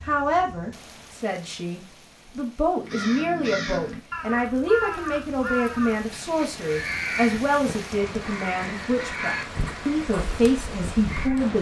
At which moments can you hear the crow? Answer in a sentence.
The crow can be heard from 2.8 to 11.5 s.